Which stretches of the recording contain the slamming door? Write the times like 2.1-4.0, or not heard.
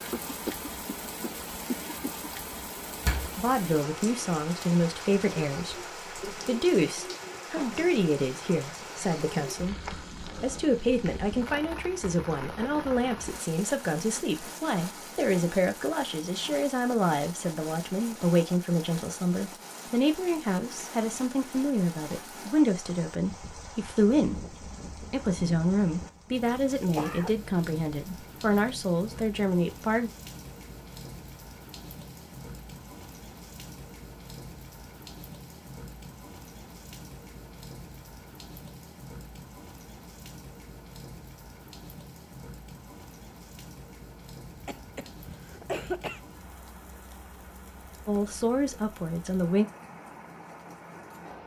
3.0-3.5.